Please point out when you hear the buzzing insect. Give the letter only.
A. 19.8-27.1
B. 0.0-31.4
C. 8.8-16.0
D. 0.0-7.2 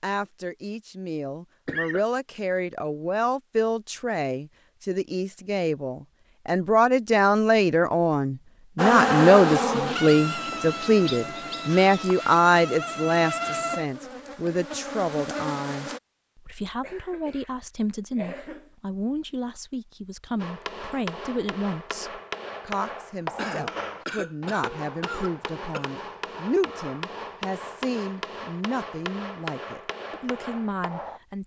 C.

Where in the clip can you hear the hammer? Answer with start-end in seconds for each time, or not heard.
20.4-31.2.